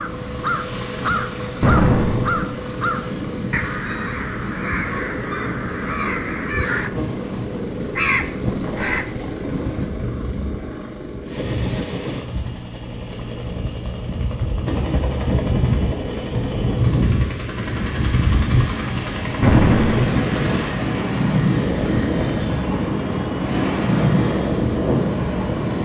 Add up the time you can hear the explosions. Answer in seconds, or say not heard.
2 s.